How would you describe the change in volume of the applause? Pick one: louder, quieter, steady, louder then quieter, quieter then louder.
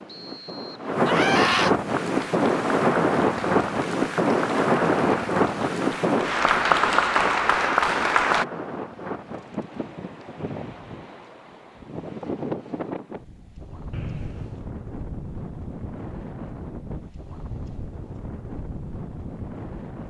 louder.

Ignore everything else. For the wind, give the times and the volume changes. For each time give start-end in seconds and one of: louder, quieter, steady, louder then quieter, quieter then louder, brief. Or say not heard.
0.0-20.0 quieter.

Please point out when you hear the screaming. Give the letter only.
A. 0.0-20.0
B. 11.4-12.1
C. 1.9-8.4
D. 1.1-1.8
D.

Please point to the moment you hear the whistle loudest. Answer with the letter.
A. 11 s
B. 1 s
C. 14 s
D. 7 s
C.